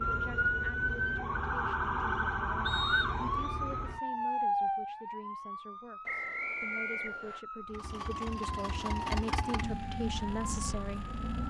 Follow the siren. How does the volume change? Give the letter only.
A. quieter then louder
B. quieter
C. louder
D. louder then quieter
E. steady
B.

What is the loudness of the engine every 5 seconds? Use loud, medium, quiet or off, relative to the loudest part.
off, loud, loud.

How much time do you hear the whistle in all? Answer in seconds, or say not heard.
2 s.